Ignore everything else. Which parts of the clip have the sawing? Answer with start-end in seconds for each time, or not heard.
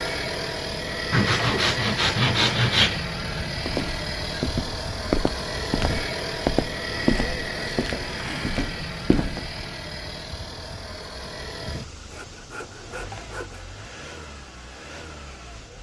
1.1-3.0, 6.8-8.6, 12.1-13.8.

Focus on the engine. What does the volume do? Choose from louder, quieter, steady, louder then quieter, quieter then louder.
quieter.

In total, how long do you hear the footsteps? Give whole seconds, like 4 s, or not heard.
6 s.